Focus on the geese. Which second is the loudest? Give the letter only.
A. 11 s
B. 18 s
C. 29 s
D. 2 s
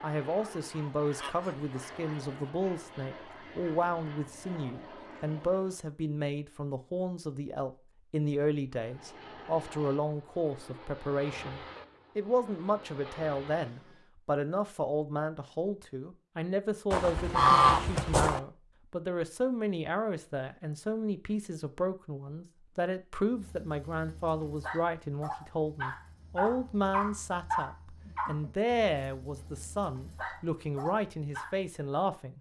B.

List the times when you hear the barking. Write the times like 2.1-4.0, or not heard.
23.3-31.7.